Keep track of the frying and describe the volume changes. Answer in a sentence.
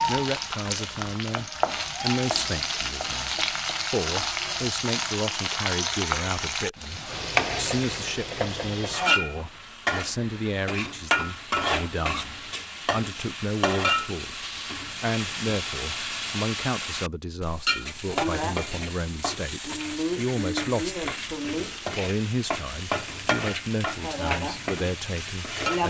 The volume of the frying stays about the same.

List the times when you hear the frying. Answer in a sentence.
You can hear the frying from 0.0 to 25.8 s.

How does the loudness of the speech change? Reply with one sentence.
The volume of the speech stays about the same.